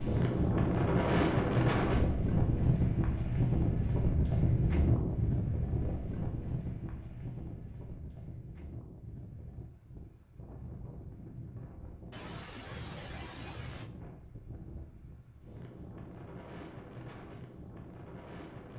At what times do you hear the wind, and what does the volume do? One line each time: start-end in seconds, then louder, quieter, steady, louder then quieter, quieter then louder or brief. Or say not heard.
0.0-18.7 quieter.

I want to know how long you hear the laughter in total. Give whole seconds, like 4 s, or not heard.
2 s.